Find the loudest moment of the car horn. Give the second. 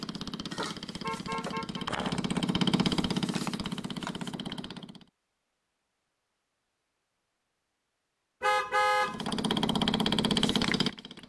9 s.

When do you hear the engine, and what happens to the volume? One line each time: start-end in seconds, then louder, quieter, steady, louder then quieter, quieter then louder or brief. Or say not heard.
0.0-5.0 louder then quieter
9.0-11.2 brief.